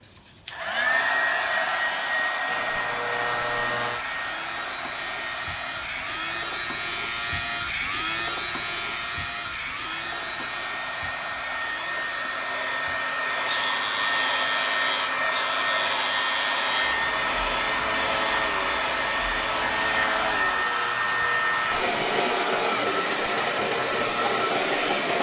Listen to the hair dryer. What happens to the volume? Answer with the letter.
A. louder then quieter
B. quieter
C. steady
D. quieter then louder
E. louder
D.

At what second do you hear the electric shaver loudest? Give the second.
8 s.